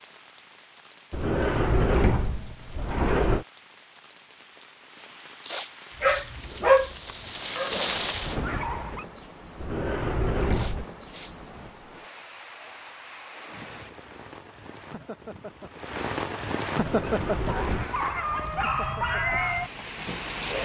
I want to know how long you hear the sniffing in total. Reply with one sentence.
You can hear the sniffing for 2 seconds altogether.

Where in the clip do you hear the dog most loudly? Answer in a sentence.
The volume of the dog peaks at 7 seconds.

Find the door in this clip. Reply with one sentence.
The door can be heard from 1.1 to 3.5 s, from 9.6 to 10.8 s and from 16.8 to 17.9 s.